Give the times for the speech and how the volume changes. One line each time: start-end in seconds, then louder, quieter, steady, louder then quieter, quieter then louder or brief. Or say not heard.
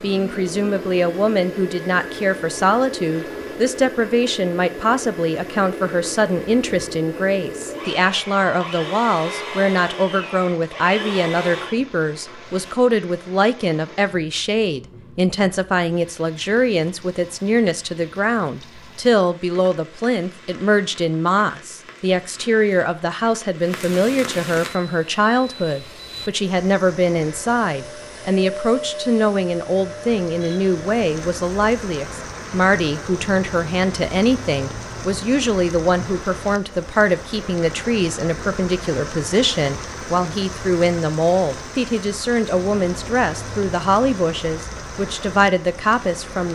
0.0-46.5 steady.